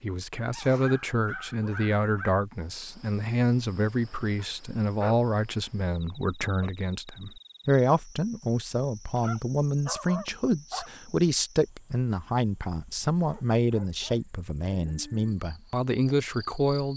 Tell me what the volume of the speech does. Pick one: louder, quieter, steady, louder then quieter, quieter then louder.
steady.